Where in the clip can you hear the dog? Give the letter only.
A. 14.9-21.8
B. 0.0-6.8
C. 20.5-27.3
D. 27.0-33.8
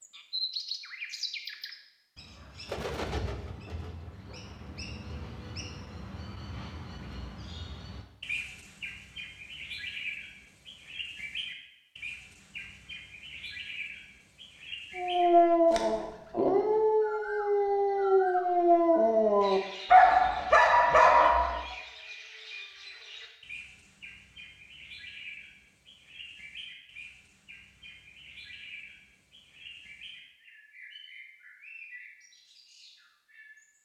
A.